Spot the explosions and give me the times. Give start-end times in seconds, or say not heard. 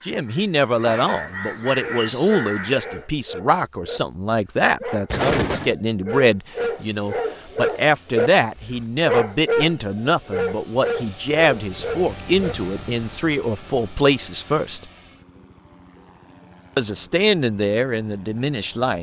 5.1-5.8.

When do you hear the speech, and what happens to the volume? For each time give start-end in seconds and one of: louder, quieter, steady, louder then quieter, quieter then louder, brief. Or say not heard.
0.0-14.8 steady
16.8-18.9 brief.